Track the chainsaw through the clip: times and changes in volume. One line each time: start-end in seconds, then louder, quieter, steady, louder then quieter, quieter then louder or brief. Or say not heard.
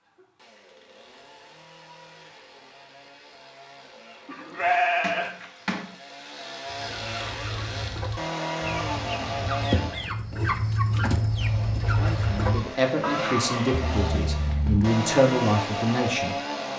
0.0-10.1 louder
11.2-16.7 louder.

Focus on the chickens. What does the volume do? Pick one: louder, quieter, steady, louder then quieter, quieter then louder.
louder.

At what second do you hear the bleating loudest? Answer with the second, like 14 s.
5 s.